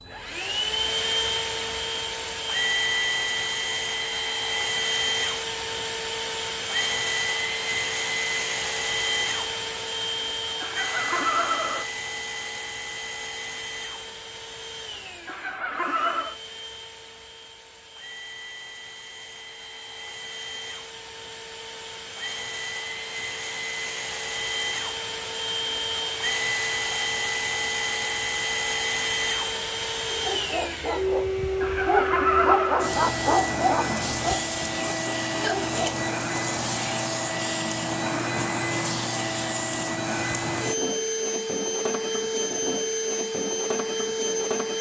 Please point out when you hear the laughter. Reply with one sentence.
You can hear the laughter from 10.6 to 11.8 s, from 15.2 to 16.4 s and from 31.6 to 32.9 s.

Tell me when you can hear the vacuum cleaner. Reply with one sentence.
You can hear the vacuum cleaner from 0.0 to 44.7 s.